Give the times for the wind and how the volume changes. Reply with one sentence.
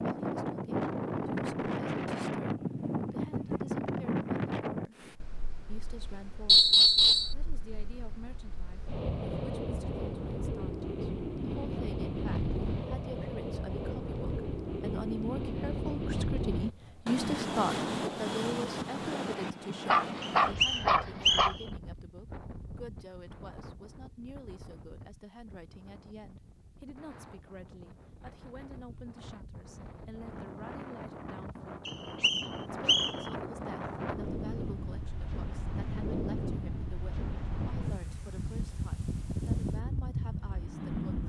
The wind can be heard from 0.0 to 41.2 s, getting quieter then louder.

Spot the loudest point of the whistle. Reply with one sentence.
The volume of the whistle peaks at 7 seconds.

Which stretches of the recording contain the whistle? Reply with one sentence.
You can hear the whistle from 6.5 to 7.3 s, from 20.2 to 21.5 s and from 31.9 to 33.1 s.